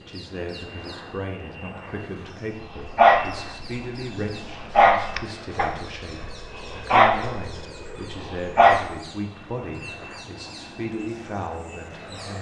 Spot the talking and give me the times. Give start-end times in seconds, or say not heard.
0.0-12.3.